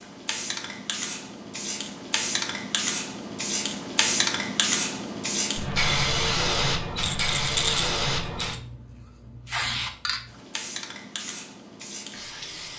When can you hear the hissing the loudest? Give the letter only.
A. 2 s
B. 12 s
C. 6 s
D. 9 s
C.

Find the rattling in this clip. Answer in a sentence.
The rattling can be heard from 7.0 to 8.6 s.